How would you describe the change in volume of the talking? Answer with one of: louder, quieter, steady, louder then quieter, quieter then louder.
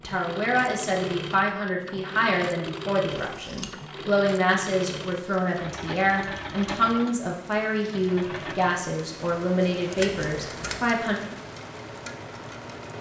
steady.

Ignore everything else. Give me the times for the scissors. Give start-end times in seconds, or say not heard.
3.1-3.7, 9.9-10.9.